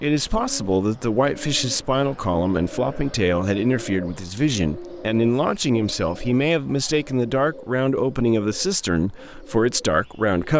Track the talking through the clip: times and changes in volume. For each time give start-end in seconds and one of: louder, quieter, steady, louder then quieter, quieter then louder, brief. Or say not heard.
0.0-10.5 steady.